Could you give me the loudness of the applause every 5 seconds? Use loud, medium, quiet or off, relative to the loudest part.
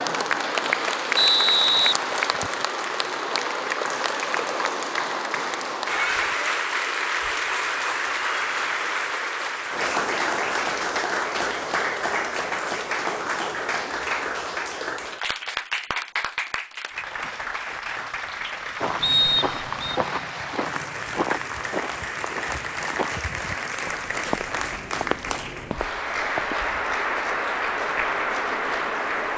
loud, loud, loud, medium, medium, loud.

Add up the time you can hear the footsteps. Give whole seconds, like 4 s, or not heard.
8 s.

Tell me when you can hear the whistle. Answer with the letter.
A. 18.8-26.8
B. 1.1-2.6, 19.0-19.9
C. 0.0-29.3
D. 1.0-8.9
B.